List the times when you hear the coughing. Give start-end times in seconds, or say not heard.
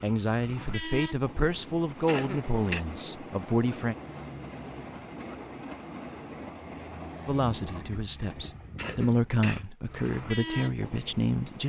2.0-2.8, 8.8-9.7.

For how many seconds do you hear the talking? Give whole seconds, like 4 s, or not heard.
8 s.